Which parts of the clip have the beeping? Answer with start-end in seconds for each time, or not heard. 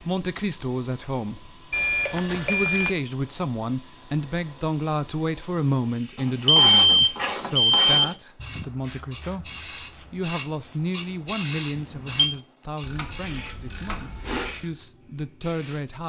1.7-3.0, 6.5-8.1, 11.8-12.2.